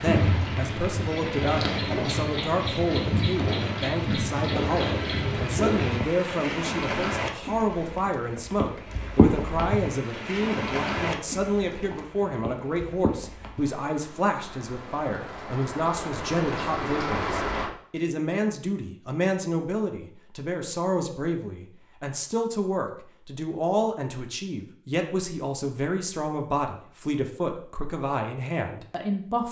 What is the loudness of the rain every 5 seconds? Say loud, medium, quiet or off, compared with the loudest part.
loud, loud, medium, loud, off, off.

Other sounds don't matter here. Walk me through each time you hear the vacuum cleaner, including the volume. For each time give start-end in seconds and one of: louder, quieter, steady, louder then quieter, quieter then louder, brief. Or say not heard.
not heard.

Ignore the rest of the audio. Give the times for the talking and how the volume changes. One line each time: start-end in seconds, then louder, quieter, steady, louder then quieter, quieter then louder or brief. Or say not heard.
0.0-29.4 steady.